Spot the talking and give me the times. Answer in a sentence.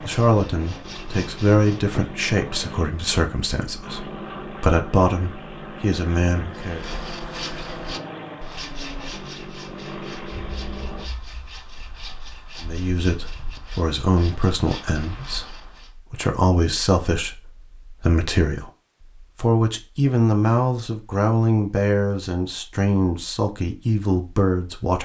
The talking can be heard from 0.1 to 6.8 s, from 12.6 to 18.7 s and from 19.4 to 25.0 s.